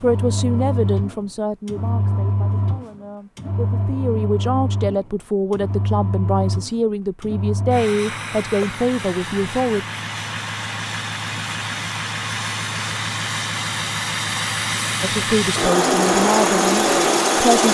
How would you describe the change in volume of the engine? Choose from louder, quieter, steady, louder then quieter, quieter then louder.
louder.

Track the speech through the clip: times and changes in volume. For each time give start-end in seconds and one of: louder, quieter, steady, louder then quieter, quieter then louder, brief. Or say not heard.
0.0-9.8 quieter then louder
15.0-17.6 brief.